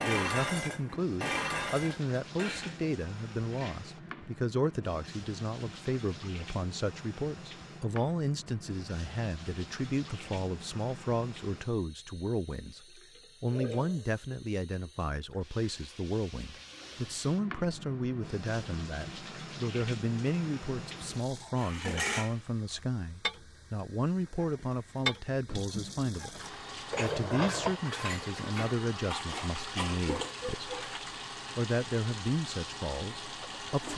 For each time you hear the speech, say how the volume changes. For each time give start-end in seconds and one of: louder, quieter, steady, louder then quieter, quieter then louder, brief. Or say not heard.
0.0-30.7 steady
31.6-33.9 brief.